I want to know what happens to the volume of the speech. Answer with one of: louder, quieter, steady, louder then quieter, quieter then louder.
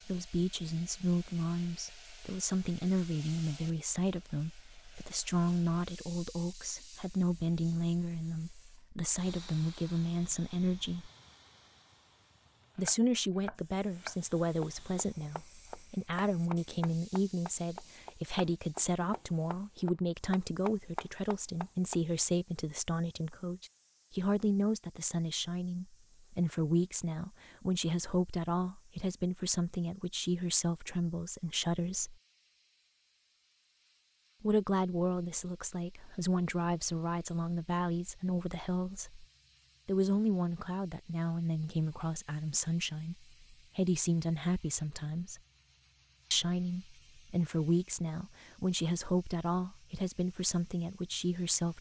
steady.